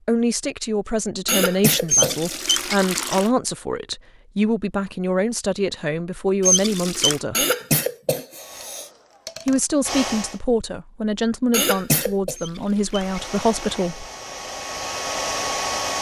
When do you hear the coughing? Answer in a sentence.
The coughing can be heard from 1.2 to 2.7 s, from 7.3 to 8.8 s and from 11.5 to 12.3 s.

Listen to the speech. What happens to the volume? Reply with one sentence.
The loudness of the speech stays about the same.